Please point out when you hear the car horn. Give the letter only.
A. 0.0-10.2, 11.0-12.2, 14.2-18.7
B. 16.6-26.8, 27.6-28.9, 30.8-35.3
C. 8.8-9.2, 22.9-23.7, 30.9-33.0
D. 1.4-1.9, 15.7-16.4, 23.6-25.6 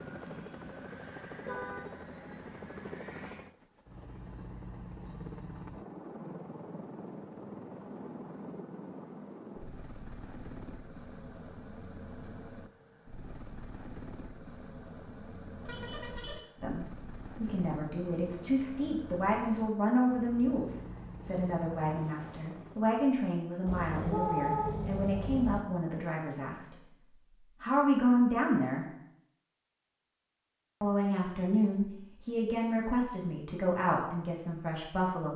D.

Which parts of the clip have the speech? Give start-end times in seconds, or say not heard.
16.6-26.8, 27.6-28.9, 30.8-35.3.